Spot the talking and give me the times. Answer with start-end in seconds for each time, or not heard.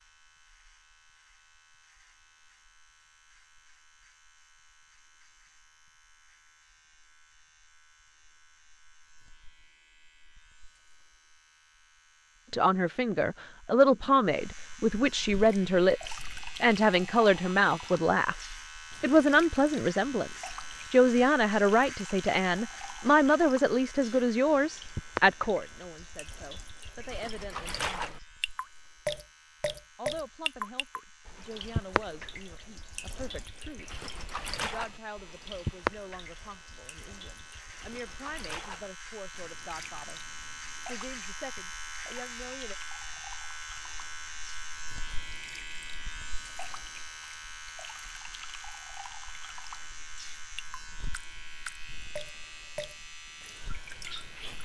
12.5-18.4, 19.0-28.2, 29.9-33.9, 34.5-40.2, 40.9-42.8.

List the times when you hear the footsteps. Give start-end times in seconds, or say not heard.
not heard.